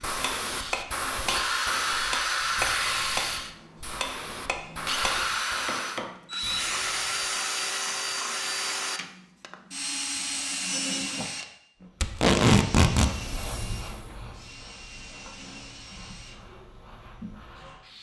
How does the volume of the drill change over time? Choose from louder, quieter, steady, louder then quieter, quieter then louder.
quieter.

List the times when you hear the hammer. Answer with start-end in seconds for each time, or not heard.
0.1-6.1.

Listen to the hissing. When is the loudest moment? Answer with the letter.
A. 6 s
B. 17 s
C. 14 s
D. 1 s
D.